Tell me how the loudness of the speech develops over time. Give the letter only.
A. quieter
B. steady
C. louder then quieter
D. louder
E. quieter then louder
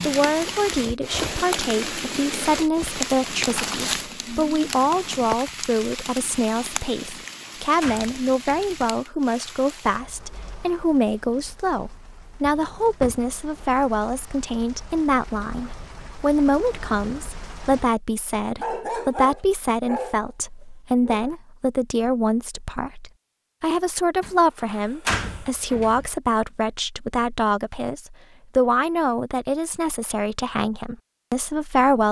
B.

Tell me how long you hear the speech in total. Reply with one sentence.
The speech can be heard for 32 seconds in total.